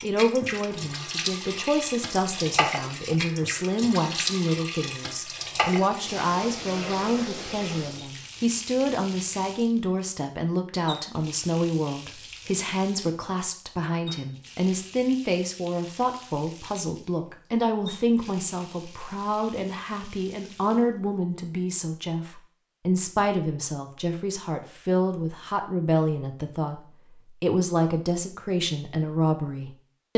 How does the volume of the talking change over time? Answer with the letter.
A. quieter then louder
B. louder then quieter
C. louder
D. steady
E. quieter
D.